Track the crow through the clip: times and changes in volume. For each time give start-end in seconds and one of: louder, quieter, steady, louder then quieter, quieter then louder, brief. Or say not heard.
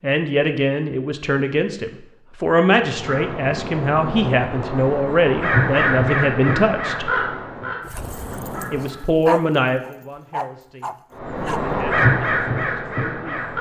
2.8-9.1 louder then quieter
11.2-13.5 brief.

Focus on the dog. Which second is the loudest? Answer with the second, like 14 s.
9 s.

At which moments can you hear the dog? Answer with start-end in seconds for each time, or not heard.
7.8-11.7.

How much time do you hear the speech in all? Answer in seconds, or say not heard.
12 s.